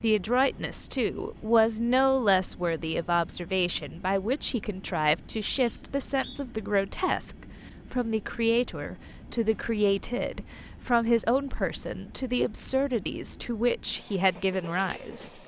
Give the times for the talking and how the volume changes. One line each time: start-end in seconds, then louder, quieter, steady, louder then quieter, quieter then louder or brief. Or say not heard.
0.0-15.4 steady.